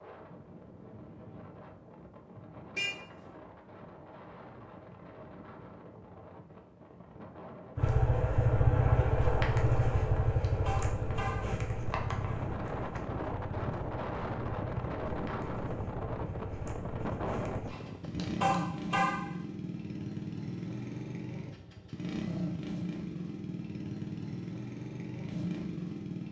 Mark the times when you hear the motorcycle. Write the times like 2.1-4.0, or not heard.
7.8-26.2.